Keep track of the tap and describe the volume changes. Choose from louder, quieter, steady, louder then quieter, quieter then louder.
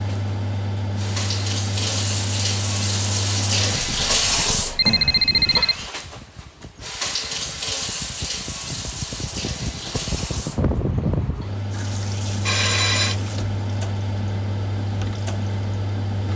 quieter.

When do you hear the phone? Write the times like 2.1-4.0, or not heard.
4.2-5.8, 12.4-13.2.